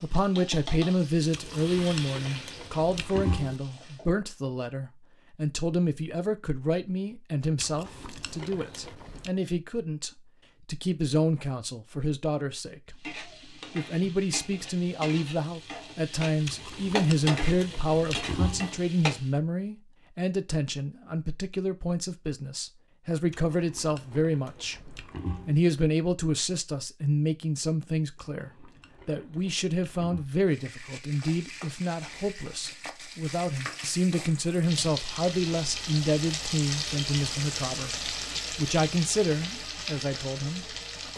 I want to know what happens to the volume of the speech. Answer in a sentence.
The volume of the speech stays about the same.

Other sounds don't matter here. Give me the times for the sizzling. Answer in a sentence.
You can hear the sizzling from 0.0 to 4.1 s, from 12.9 to 19.4 s and from 30.4 to 41.1 s.